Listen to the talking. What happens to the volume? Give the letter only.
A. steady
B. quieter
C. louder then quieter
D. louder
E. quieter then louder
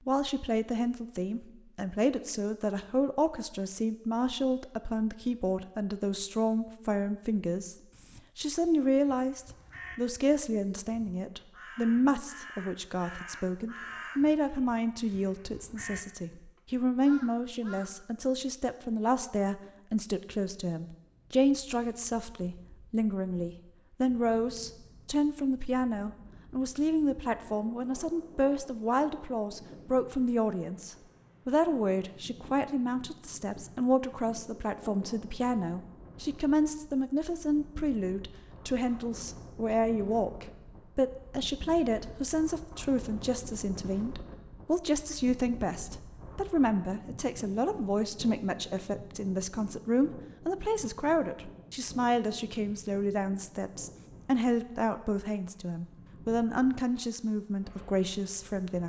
A.